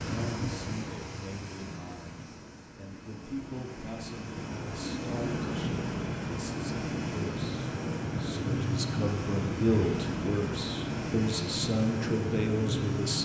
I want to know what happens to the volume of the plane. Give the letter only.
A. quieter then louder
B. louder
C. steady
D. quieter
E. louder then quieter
B.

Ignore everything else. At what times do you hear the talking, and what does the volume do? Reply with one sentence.
You can hear the talking from 0.1 to 13.2 s, getting louder.